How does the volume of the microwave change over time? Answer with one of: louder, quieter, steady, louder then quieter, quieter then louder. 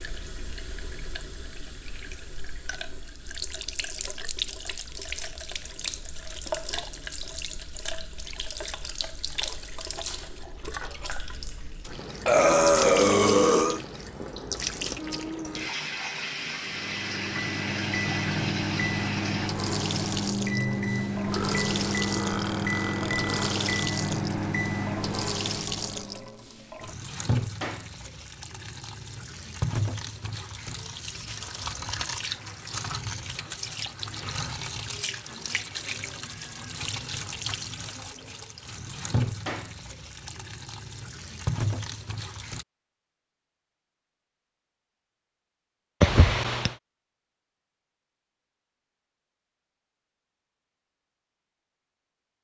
steady.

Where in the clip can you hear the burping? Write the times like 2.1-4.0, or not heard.
12.2-13.8, 21.2-23.9, 46.0-46.8.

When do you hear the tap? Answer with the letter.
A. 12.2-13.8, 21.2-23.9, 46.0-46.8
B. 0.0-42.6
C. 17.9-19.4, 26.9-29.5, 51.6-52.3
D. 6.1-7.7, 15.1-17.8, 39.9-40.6
B.